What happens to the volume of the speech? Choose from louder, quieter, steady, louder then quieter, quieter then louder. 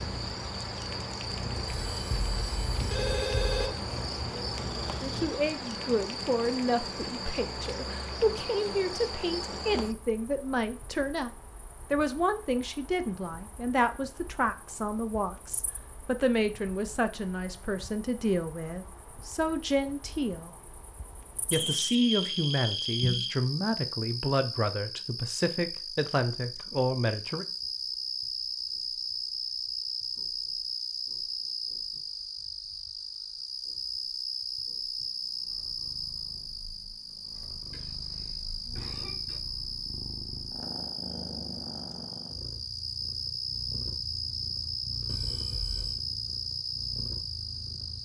steady.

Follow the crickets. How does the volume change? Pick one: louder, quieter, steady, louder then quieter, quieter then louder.
quieter then louder.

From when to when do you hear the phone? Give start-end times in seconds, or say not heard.
1.6-3.7, 21.5-23.4, 45.0-46.0.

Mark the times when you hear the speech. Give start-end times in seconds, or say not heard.
5.0-11.3, 11.9-20.6, 21.5-27.4.